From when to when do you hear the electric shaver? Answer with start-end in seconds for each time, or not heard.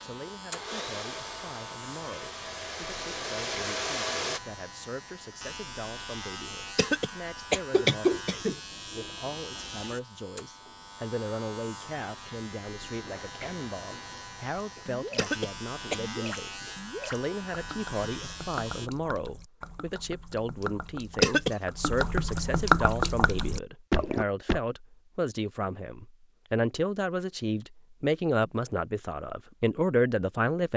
0.0-18.9.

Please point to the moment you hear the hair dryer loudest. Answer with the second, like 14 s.
4 s.